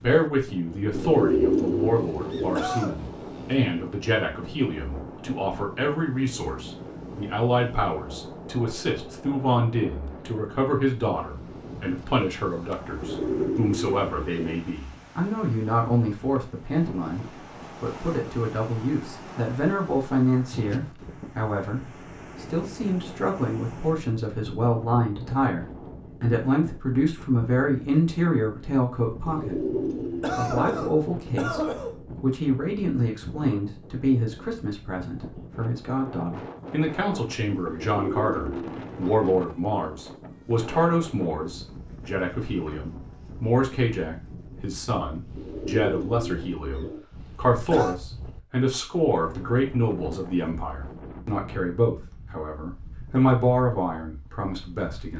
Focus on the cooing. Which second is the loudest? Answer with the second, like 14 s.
1 s.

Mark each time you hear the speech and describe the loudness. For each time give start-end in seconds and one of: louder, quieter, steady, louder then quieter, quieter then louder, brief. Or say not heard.
0.0-29.8 steady
30.4-55.1 steady.